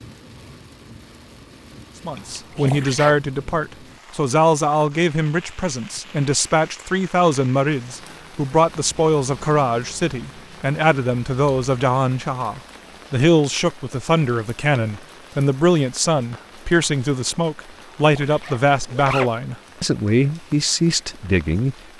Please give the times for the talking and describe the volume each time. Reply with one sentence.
The talking can be heard from 2.0 to 21.8 s, at a steady volume.